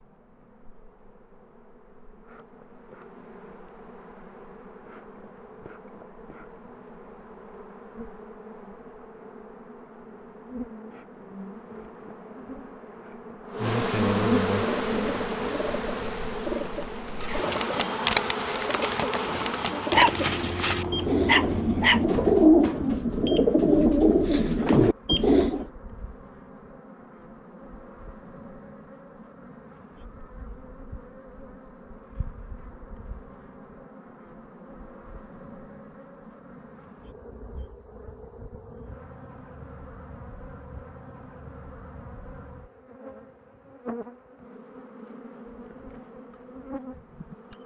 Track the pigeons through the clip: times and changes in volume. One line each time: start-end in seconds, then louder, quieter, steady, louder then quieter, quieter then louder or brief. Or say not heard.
14.7-25.6 louder.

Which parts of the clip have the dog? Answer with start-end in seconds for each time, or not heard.
19.9-22.1.